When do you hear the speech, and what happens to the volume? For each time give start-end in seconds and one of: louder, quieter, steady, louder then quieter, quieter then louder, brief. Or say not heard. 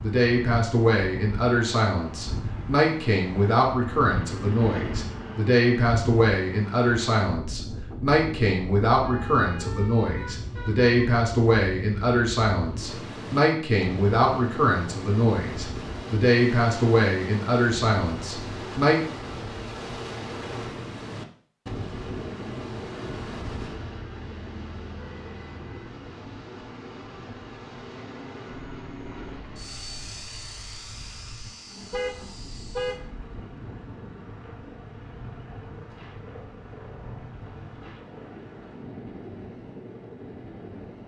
0.0-19.0 steady.